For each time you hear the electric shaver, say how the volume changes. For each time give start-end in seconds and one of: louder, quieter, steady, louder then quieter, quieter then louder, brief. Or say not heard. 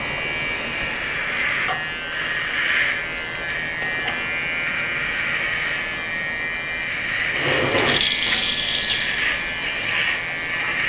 0.0-10.8 steady.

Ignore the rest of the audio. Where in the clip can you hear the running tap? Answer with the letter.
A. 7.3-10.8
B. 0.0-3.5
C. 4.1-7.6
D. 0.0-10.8
A.